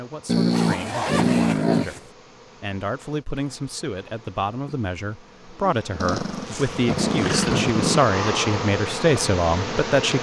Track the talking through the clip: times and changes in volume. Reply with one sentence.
You can hear the talking from 0.0 to 10.1 s, getting louder.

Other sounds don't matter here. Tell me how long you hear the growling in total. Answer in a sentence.
You can hear the growling for 4 seconds altogether.